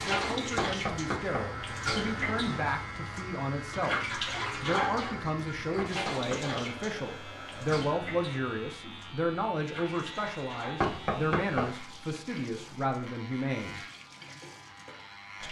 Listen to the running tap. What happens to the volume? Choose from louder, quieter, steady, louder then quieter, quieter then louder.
quieter.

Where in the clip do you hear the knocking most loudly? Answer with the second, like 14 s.
11 s.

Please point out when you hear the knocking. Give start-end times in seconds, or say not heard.
0.6-1.5, 5.8-6.6, 10.8-11.7.